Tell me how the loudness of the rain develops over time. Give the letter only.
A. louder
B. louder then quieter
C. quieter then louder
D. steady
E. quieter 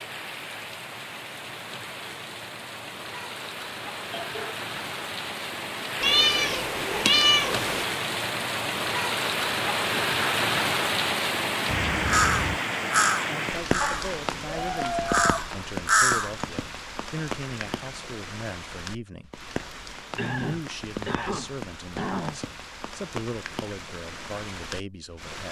B.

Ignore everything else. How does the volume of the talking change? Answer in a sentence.
The volume of the talking stays about the same.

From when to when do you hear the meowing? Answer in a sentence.
The meowing can be heard from 6.0 to 7.8 s and from 13.8 to 15.4 s.